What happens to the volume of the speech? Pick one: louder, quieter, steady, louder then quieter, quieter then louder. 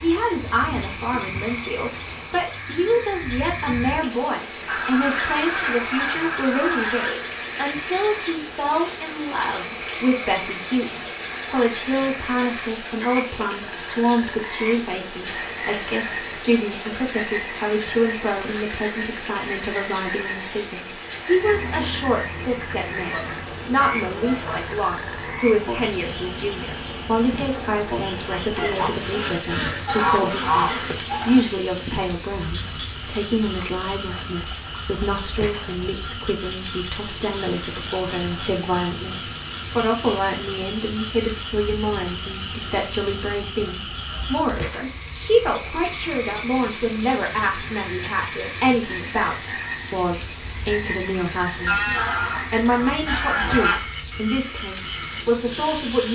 steady.